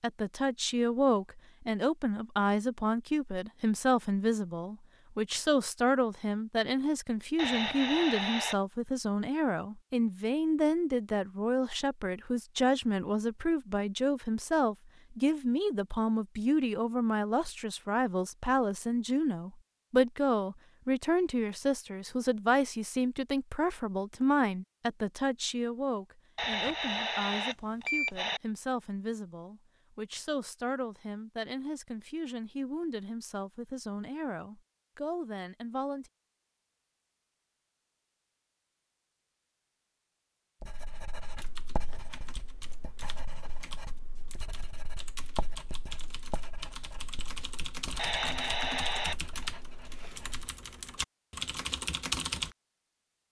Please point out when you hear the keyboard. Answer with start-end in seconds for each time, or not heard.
41.3-52.5.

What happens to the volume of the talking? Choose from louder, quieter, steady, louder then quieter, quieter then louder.
quieter.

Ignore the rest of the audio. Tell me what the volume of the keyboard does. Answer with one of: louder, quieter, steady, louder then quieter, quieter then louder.
louder.